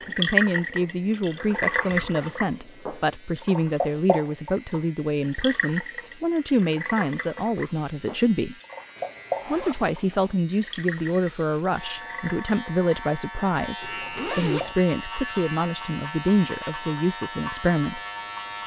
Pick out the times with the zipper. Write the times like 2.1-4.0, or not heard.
1.6-2.4, 8.9-10.3, 13.8-14.8.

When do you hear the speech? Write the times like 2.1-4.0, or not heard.
0.1-8.6, 9.4-18.0.